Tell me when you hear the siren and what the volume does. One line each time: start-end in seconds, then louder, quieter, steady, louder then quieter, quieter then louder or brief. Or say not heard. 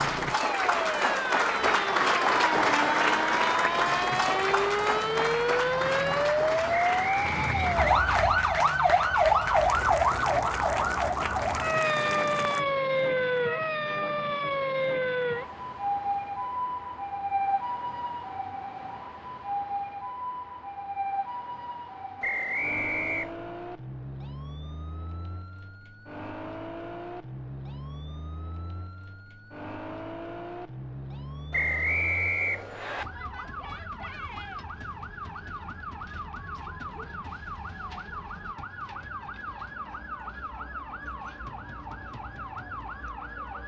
0.0-43.6 quieter.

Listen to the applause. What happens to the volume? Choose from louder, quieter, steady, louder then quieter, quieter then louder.
quieter.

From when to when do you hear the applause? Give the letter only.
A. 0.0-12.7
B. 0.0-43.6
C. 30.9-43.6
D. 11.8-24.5
A.